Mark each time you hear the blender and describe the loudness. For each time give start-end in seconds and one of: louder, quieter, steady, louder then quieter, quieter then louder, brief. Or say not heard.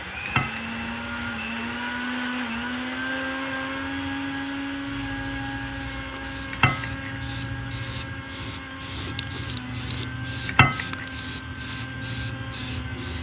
0.0-13.1 quieter.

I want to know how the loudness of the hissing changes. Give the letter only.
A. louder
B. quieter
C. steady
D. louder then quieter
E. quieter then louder
A.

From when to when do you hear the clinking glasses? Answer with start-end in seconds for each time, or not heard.
0.2-0.8, 6.5-7.2, 10.4-11.1.